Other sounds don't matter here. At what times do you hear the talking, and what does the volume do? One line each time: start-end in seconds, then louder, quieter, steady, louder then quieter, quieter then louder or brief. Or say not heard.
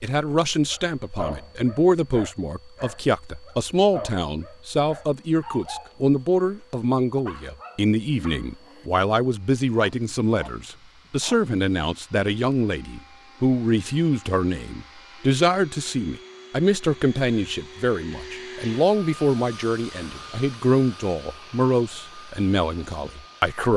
0.0-23.7 steady.